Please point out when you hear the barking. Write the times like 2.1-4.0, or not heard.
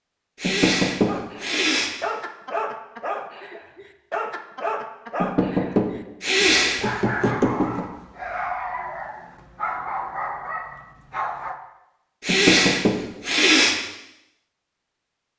1.1-11.6.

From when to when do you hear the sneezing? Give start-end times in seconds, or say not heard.
0.3-1.9, 6.2-7.3, 12.2-13.8.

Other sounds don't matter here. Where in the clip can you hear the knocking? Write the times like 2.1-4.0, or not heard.
0.4-1.1, 5.2-7.8, 12.2-13.1.